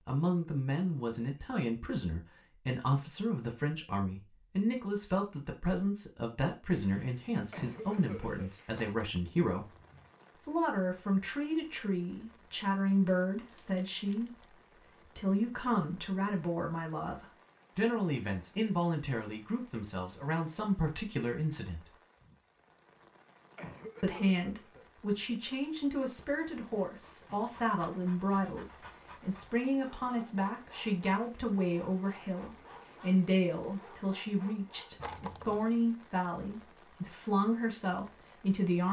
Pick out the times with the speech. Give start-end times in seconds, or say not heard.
0.1-9.8, 10.4-21.9, 24.0-38.8.